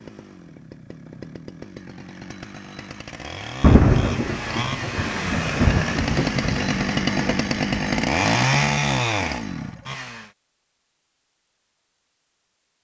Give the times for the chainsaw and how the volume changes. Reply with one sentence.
The chainsaw can be heard from 0.0 to 10.3 s, getting louder.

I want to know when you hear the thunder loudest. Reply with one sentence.
The loudest moment of the thunder is at 4 seconds.